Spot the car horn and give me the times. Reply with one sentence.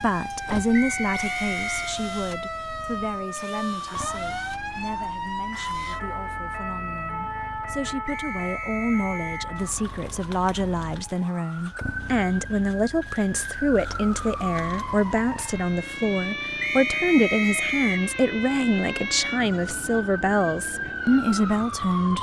The car horn can't be heard in this clip.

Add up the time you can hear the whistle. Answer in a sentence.
The whistle can be heard for 4 seconds in total.